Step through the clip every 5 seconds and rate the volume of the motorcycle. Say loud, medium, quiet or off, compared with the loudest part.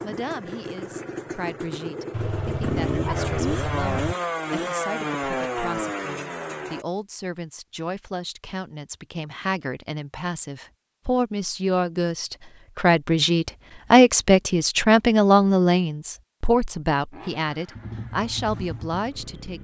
loud, loud, off, medium.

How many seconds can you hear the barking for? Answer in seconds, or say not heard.
2 s.